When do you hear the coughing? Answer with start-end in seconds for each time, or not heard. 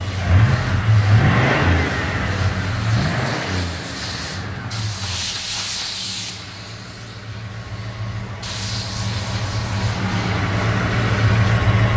not heard.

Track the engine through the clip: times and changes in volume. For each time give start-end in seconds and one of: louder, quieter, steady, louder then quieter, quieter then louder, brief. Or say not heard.
0.0-11.9 quieter then louder.